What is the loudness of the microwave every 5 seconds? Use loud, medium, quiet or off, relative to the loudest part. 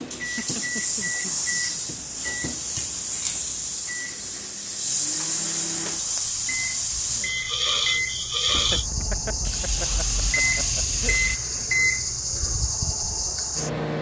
medium, medium, loud.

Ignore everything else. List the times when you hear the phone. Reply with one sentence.
You can't hear the phone here.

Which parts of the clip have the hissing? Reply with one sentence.
The hissing can be heard from 0.0 to 11.4 s.